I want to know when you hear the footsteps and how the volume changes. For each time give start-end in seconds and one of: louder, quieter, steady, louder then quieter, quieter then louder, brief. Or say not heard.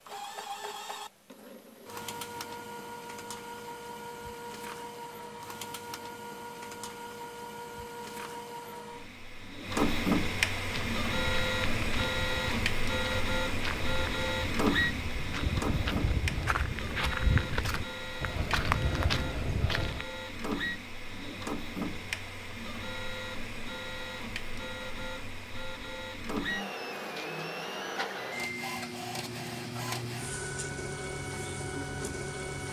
10.7-20.1 louder.